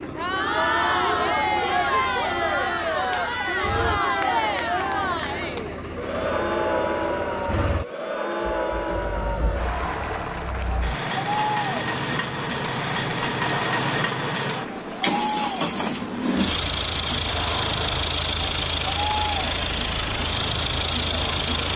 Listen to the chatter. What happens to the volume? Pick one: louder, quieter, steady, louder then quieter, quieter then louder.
quieter.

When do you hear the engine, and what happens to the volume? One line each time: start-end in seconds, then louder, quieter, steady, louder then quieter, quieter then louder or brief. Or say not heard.
0.0-21.7 louder.